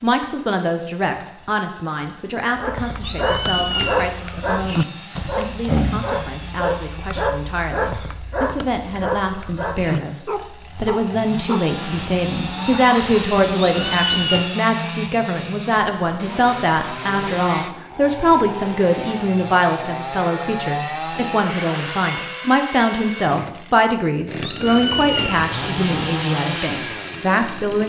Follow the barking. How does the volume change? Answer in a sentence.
The volume of the barking goes down.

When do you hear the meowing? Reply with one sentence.
The meowing can be heard from 3.0 to 4.1 s, from 13.6 to 14.4 s and from 24.4 to 25.9 s.